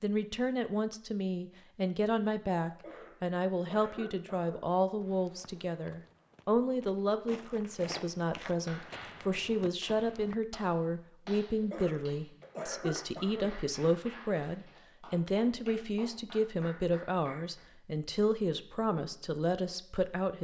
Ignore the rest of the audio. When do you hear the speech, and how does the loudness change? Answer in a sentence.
You can hear the speech from 0.0 to 20.3 s, at a steady volume.